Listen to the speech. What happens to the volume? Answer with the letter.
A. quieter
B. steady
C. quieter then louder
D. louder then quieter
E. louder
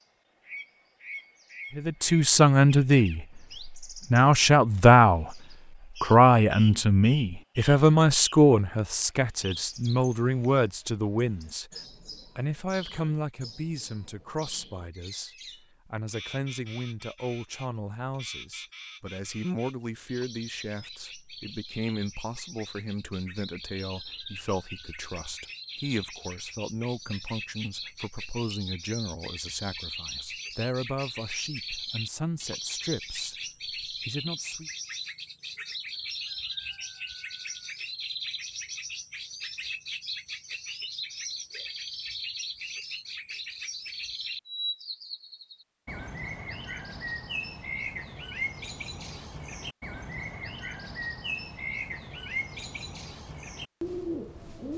A.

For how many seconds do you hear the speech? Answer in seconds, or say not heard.
32 s.